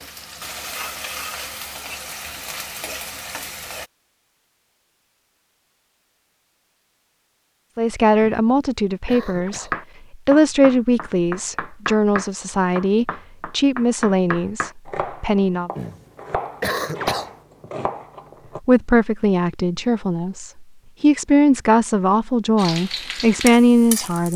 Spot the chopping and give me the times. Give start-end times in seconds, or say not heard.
9.7-18.6.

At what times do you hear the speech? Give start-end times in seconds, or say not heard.
7.8-15.7, 18.6-24.3.